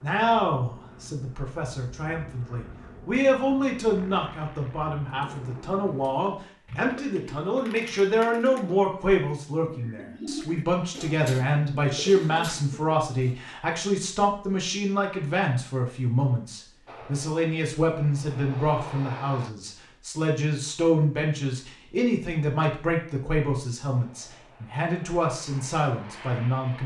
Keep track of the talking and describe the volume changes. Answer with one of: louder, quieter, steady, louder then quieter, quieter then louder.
steady.